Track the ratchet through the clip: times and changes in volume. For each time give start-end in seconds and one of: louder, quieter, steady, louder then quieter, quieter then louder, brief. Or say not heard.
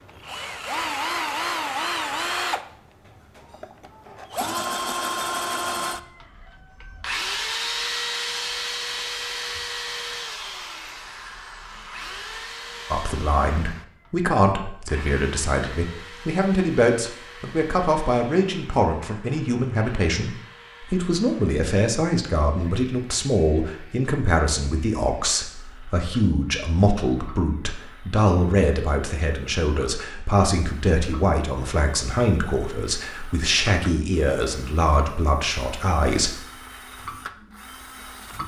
not heard.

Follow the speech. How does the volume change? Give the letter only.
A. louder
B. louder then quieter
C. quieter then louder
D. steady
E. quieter
D.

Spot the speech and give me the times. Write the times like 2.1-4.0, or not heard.
12.9-36.4.